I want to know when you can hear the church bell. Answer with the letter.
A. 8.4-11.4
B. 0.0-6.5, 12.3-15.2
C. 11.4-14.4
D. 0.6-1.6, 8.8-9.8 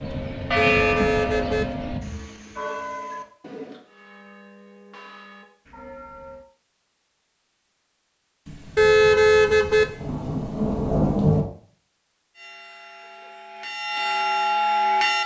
B.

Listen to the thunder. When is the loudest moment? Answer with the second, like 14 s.
11 s.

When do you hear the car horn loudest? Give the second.
9 s.